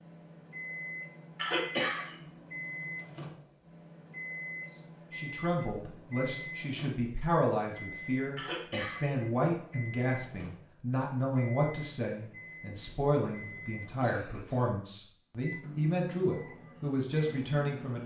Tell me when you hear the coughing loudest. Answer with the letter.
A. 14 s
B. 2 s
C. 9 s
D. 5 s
B.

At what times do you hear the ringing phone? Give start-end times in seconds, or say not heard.
not heard.